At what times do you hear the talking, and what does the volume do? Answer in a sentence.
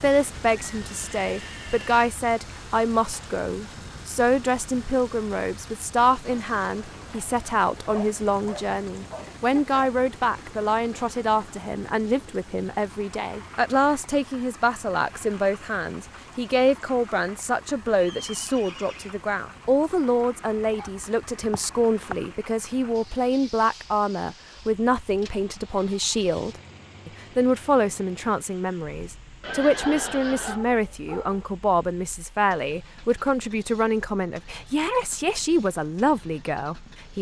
You can hear the talking from 0.0 to 37.1 s, at a steady volume.